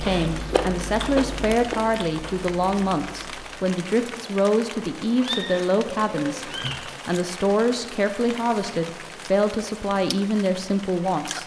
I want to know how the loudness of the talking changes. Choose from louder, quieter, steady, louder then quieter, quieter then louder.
steady.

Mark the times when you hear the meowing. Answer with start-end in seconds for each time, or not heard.
5.2-6.8.